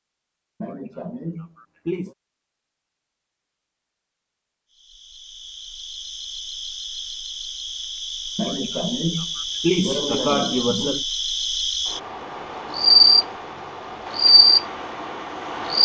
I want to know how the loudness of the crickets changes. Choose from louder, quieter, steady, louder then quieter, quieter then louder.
louder.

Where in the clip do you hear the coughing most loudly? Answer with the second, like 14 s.
10 s.